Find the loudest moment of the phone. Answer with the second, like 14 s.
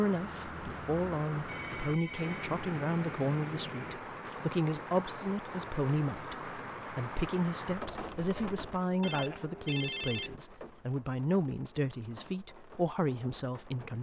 10 s.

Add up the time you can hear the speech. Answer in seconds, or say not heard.
14 s.